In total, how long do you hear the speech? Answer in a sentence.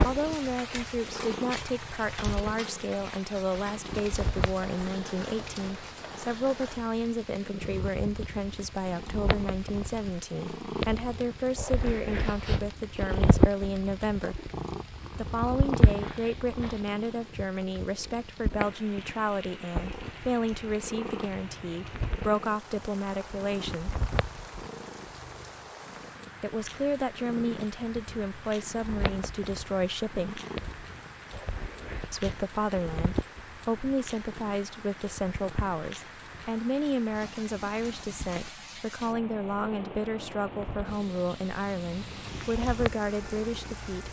The speech can be heard for 39 seconds in total.